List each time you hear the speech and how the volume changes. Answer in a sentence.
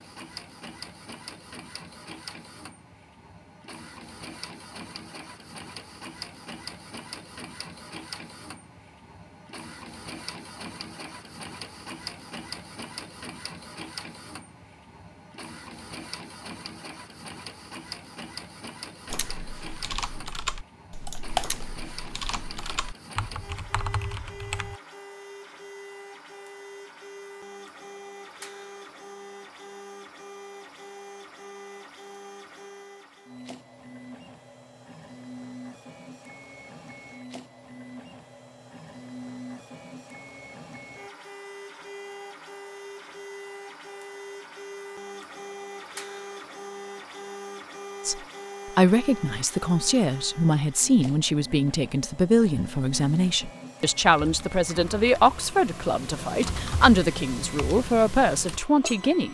The speech can be heard from 48.0 to 59.2 s, at a steady volume.